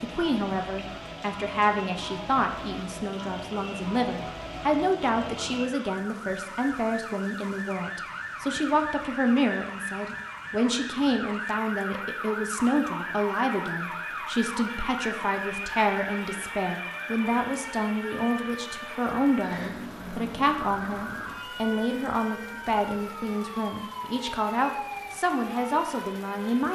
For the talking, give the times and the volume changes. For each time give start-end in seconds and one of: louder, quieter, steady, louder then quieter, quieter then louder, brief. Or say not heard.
0.0-26.6 steady.